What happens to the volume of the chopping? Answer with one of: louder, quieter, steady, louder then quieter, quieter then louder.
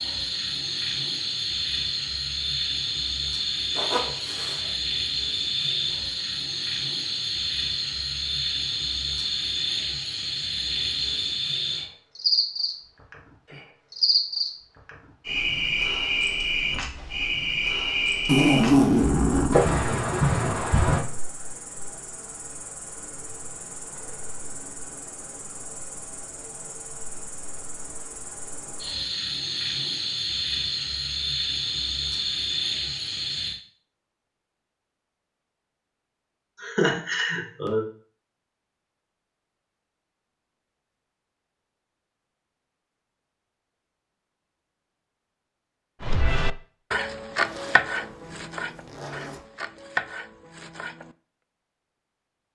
quieter then louder.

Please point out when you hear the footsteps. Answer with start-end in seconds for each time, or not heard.
not heard.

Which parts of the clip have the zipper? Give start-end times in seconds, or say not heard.
3.8-4.6, 18.2-19.6, 47.4-49.4.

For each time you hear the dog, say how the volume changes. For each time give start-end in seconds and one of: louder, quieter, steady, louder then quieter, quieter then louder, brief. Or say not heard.
not heard.